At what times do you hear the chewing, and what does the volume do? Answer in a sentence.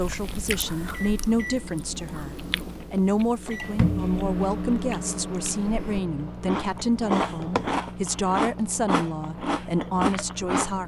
You can hear the chewing from 0.0 to 10.8 s, getting louder.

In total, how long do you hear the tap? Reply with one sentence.
The tap can't be heard in this clip.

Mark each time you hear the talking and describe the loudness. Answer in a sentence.
The talking can be heard from 0.0 to 10.8 s, at a steady volume.